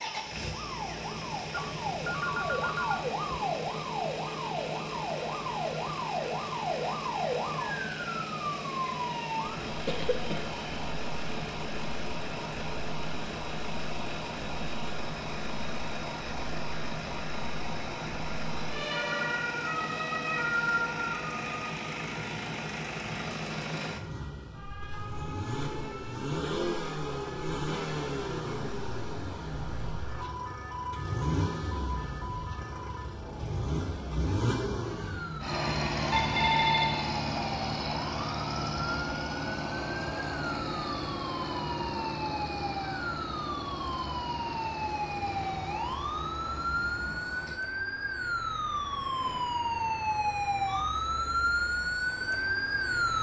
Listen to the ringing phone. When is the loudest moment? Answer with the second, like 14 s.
37 s.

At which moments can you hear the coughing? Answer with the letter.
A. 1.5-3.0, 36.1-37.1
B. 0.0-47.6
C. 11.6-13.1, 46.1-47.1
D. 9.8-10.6
D.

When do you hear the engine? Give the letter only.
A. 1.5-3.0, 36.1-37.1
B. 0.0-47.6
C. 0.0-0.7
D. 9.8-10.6
B.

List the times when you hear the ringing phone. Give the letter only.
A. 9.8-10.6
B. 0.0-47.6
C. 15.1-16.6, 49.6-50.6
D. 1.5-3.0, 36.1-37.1
D.